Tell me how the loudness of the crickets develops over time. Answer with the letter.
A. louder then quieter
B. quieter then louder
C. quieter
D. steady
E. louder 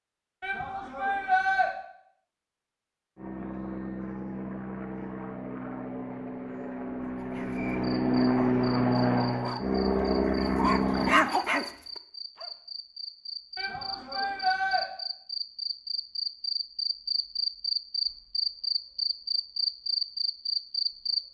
E.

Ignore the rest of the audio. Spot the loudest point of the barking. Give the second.
11 s.